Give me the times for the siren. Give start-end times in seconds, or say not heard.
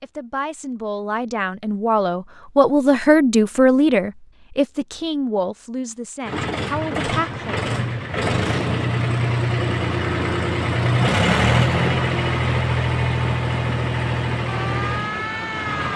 14.4-15.9.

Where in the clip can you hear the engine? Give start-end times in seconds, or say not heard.
6.2-15.9.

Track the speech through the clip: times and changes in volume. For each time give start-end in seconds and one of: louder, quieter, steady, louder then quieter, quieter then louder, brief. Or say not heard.
0.0-7.7 louder then quieter.